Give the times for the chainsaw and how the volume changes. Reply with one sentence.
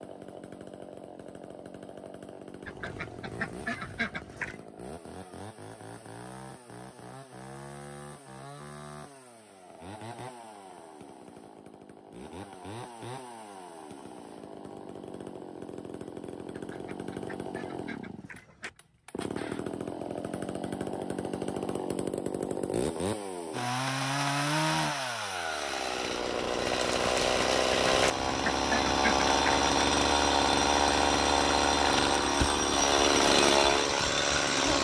The chainsaw can be heard from 0.0 to 34.7 s, getting louder.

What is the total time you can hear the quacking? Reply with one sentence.
You can hear the quacking for 6 seconds altogether.